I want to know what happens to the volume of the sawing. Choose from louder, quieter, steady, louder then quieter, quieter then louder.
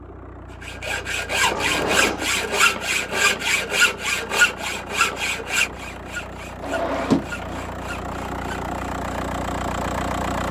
quieter.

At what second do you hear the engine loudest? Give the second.
10 s.